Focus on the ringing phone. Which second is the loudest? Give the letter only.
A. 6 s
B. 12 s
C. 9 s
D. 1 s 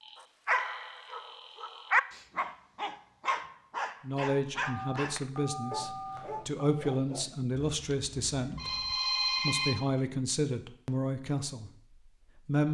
C.